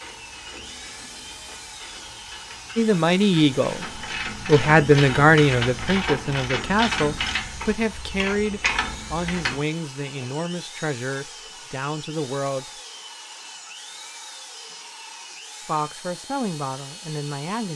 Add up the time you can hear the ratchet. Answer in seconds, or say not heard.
10 s.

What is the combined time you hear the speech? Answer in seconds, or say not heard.
12 s.